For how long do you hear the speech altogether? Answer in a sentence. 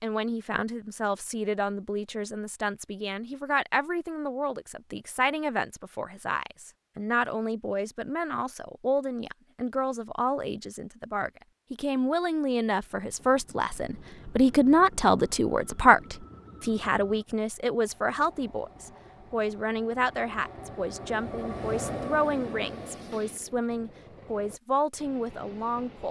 The speech can be heard for 26 seconds in total.